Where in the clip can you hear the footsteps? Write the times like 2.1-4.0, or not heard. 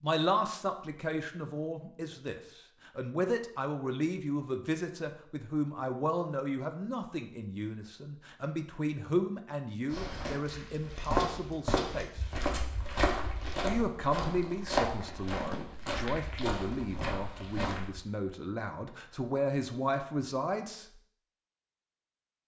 9.9-18.0.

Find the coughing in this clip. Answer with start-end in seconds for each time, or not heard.
not heard.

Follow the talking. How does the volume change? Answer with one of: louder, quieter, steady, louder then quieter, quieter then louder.
steady.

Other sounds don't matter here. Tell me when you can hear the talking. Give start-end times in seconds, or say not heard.
0.0-12.2, 13.6-20.9.